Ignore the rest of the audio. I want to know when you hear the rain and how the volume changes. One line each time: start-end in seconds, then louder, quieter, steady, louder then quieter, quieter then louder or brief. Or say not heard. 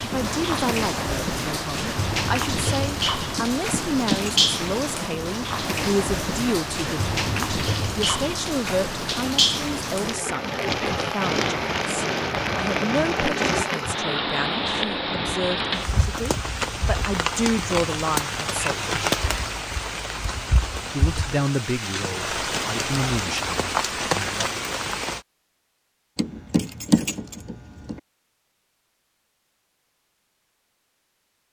0.0-25.2 steady.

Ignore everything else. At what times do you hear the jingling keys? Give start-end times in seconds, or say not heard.
3.4-4.5, 26.1-28.0.